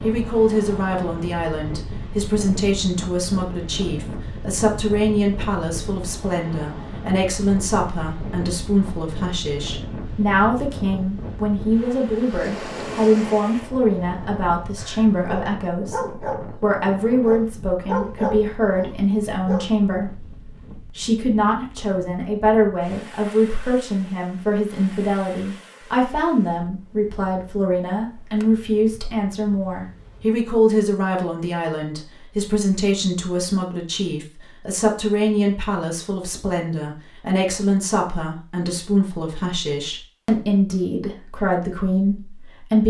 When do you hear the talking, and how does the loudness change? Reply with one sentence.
The talking can be heard from 0.0 to 42.8 s, at a steady volume.